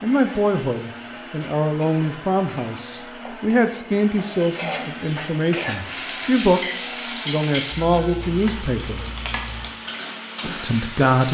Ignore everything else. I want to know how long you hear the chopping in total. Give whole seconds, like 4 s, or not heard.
not heard.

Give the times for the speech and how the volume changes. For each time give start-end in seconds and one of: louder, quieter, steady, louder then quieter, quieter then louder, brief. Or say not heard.
0.0-9.0 steady
10.4-11.2 brief.